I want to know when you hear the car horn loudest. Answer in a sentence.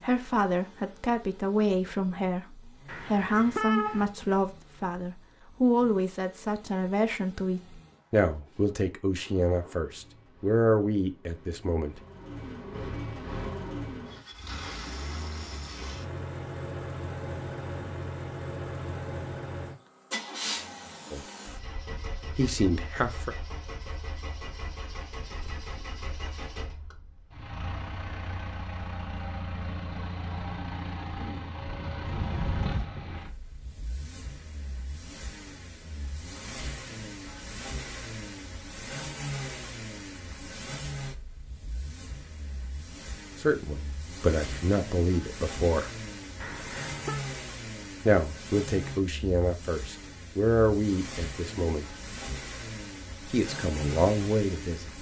The loudest moment of the car horn is at 4 seconds.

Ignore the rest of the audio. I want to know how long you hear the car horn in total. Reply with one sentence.
The car horn can be heard for 3 seconds in total.